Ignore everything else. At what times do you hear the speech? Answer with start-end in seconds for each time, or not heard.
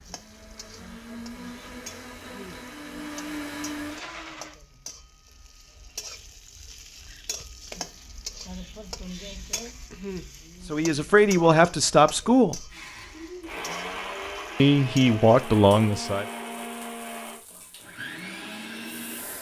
10.7-12.7, 14.6-16.2.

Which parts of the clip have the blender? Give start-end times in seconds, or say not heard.
0.0-4.5, 12.7-19.3.